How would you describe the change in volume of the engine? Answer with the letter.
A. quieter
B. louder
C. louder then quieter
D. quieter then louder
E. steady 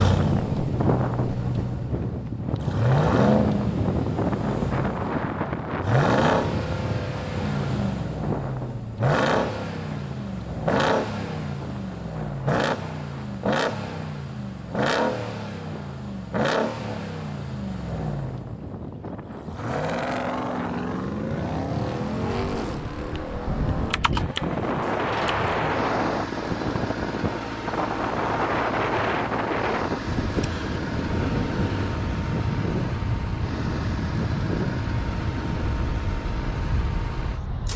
A.